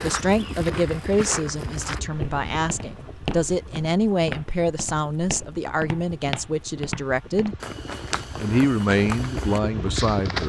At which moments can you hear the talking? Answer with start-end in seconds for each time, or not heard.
0.0-7.5, 8.3-10.4.